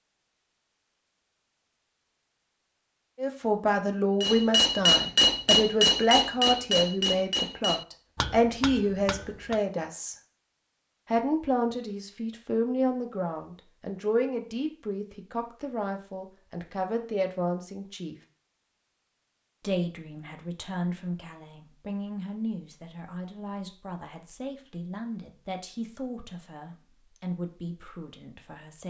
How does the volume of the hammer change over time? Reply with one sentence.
The loudness of the hammer goes down.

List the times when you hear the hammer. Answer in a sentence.
The hammer can be heard from 4.2 to 9.6 s.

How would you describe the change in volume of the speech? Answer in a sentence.
The volume of the speech goes down.